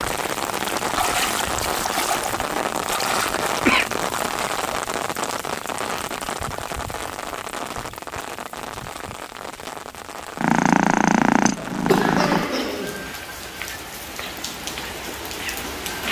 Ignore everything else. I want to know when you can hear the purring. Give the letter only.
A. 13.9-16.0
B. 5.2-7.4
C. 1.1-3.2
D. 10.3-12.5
D.